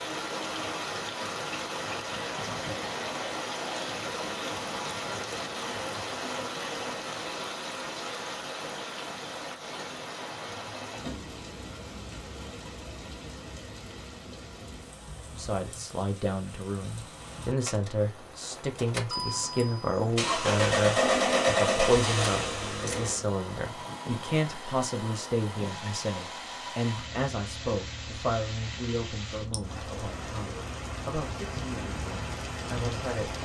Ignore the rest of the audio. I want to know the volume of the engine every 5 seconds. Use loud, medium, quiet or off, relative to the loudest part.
off, off, off, medium, loud, quiet, quiet.